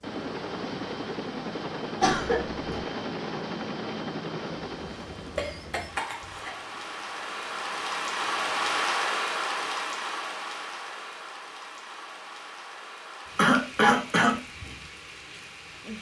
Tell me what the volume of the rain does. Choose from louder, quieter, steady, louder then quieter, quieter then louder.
louder then quieter.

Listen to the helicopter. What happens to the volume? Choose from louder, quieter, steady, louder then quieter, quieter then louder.
quieter.